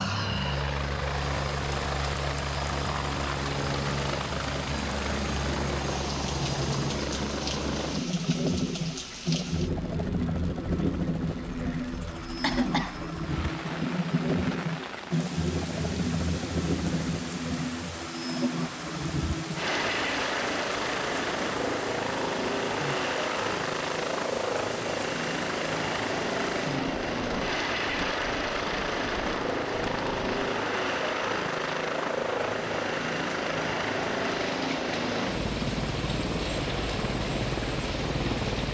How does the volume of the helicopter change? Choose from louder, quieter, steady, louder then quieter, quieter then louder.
steady.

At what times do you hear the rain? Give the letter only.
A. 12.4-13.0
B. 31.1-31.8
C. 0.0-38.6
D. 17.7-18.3
C.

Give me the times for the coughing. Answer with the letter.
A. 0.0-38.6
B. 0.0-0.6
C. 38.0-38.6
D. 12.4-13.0
D.